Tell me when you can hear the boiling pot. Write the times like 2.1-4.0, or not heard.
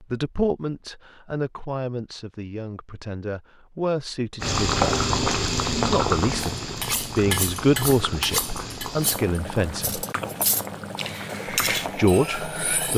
4.4-12.9.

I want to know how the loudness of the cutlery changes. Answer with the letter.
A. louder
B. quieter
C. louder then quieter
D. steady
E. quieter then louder
E.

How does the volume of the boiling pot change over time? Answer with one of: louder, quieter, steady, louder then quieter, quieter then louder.
quieter.